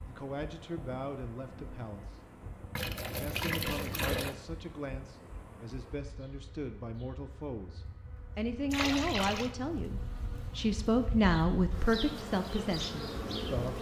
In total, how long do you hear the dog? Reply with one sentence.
The dog can't be heard in this clip.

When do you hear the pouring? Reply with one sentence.
You can hear the pouring from 2.8 to 4.3 s and from 8.7 to 9.5 s.